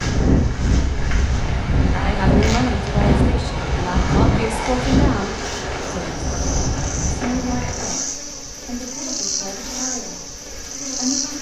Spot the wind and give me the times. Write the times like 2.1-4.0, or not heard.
0.0-7.9.